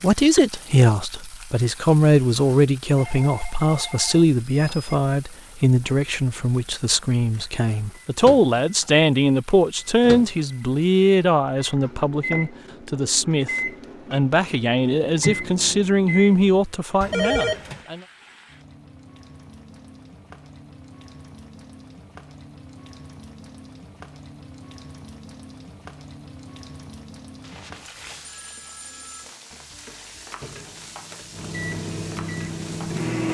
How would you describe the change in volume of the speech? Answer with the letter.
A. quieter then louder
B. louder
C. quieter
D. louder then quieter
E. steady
E.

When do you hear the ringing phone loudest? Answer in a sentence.
The volume of the ringing phone peaks at 17 seconds.